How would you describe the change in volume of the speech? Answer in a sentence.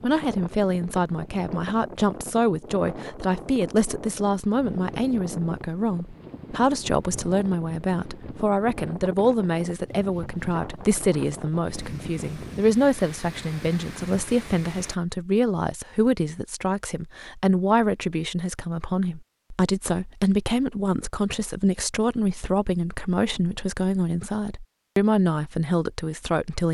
The volume of the speech stays about the same.